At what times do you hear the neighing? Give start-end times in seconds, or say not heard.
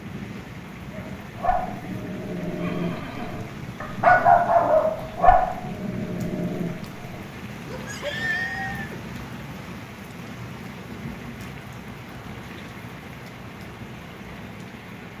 2.5-3.5, 7.8-9.1.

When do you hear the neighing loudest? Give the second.
8 s.